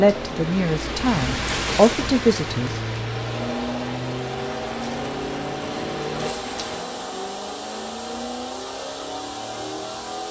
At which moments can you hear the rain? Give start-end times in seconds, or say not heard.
0.0-6.8.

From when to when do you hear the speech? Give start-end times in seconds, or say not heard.
0.0-2.8.